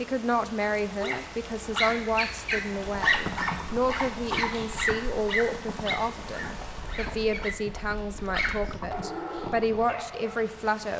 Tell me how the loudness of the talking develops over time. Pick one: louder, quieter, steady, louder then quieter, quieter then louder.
steady.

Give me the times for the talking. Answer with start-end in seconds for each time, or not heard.
0.0-10.9.